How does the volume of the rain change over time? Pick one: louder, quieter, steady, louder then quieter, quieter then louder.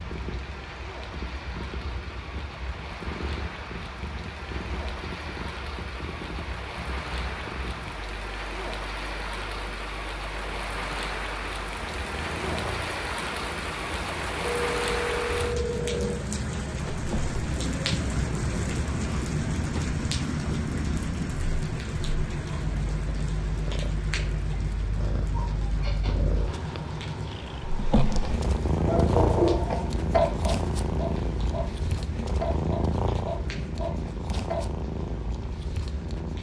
louder then quieter.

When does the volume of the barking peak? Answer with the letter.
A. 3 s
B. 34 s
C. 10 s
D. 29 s
D.